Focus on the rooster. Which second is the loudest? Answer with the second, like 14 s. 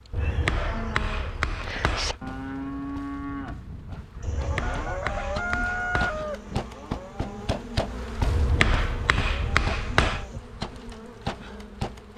6 s.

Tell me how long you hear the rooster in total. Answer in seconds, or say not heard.
3 s.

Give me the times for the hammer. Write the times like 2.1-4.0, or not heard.
0.1-2.2, 4.2-6.2, 8.2-10.2.